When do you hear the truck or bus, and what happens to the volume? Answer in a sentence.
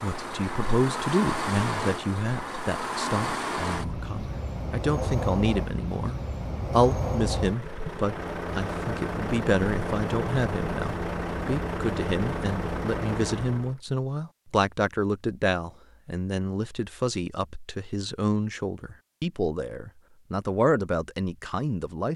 You can hear the truck or bus from 0.0 to 13.8 s, at a steady volume.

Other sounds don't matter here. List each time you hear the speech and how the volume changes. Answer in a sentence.
You can hear the speech from 0.0 to 22.1 s, at a steady volume.